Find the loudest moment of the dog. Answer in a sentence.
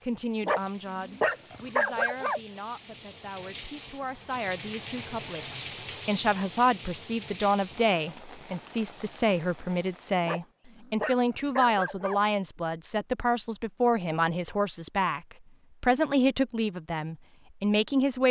The volume of the dog peaks at 2 seconds.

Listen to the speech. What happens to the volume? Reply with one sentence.
The loudness of the speech goes up.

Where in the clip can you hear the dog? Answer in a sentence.
You can hear the dog from 0.4 to 2.4 s and from 10.2 to 12.2 s.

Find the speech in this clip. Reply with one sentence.
The speech can be heard from 0.1 to 18.2 s.